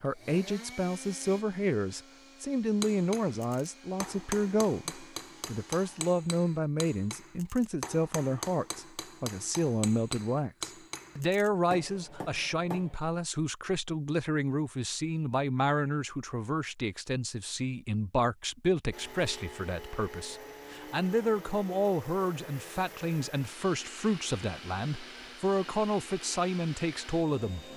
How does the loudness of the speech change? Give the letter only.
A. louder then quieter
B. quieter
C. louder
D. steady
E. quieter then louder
D.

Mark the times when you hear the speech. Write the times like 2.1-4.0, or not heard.
0.0-27.6.